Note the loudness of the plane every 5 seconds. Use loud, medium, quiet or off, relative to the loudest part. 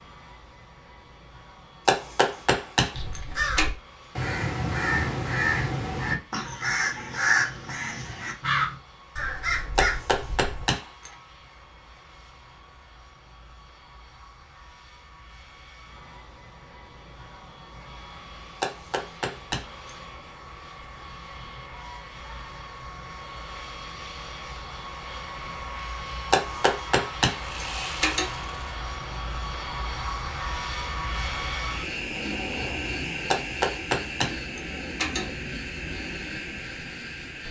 quiet, quiet, quiet, quiet, medium, loud, loud, loud.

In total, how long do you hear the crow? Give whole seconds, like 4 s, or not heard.
8 s.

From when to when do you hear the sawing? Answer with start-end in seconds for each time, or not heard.
27.4-28.6.